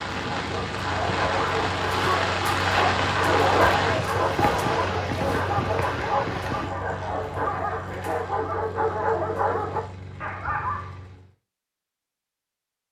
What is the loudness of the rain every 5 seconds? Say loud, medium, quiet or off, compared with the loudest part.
loud, medium, off.